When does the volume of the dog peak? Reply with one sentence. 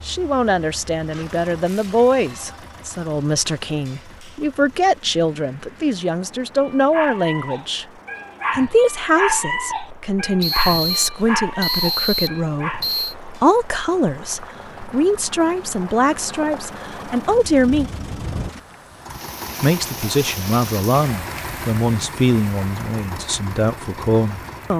The loudest moment of the dog is at 9 seconds.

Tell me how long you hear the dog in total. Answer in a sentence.
You can hear the dog for 6 seconds altogether.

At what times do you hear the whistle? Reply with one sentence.
The whistle can be heard from 10.4 to 13.2 s.